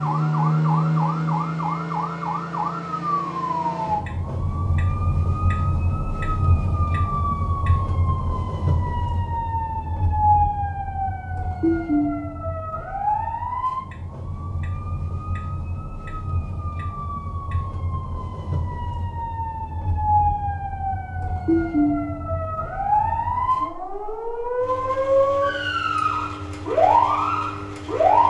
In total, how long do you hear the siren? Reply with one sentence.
The siren can be heard for 28 seconds in total.